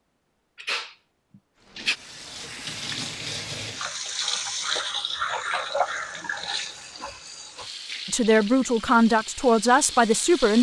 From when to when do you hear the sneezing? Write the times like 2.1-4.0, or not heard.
0.6-1.9.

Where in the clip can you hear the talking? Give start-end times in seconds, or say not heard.
8.1-10.5.